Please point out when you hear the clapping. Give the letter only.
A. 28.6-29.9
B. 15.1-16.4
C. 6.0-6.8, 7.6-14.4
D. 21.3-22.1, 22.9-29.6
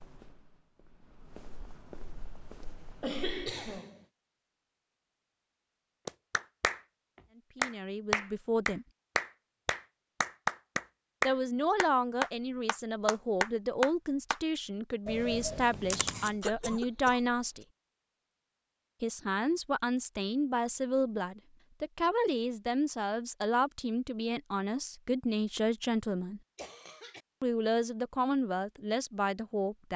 C.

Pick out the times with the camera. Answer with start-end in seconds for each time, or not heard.
15.1-16.4.